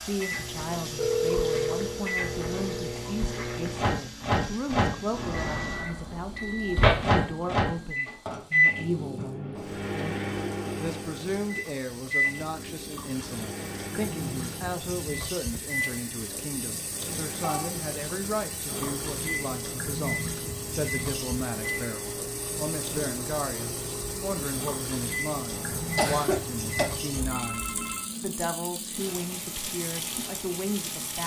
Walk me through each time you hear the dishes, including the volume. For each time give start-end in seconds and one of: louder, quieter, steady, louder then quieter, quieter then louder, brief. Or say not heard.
not heard.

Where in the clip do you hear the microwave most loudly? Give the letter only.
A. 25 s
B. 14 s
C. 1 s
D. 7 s
D.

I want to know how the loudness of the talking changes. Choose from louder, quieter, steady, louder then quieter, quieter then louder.
steady.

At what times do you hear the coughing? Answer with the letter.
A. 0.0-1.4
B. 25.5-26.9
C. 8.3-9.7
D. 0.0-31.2
B.